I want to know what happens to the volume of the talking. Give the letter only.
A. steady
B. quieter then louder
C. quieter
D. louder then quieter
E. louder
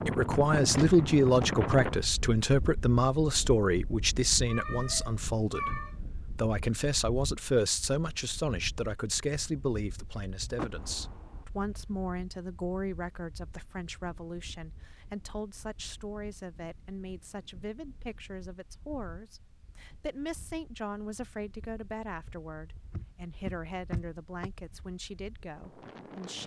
C.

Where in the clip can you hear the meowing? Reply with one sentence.
The meowing can be heard from 4.5 to 6.0 s.